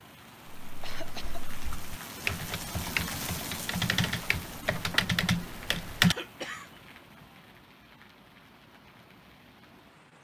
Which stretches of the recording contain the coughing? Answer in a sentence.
You can hear the coughing from 0.8 to 1.4 s and from 6.0 to 7.2 s.